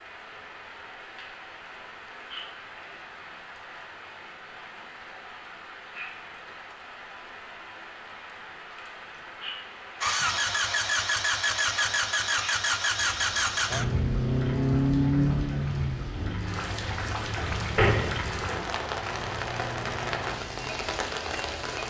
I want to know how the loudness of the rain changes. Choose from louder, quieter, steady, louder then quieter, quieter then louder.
louder.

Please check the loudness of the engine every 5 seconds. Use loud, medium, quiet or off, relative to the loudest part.
off, off, loud, medium, quiet.